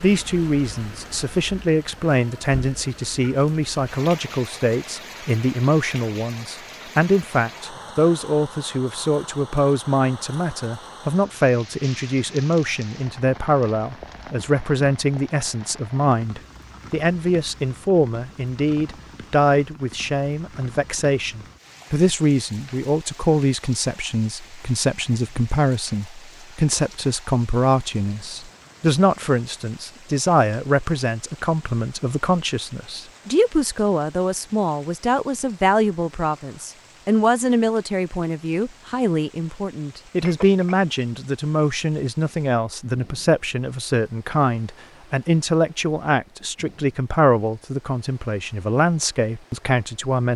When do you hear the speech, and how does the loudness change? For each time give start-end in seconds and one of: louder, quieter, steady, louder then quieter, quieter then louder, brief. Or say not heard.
0.0-50.3 steady.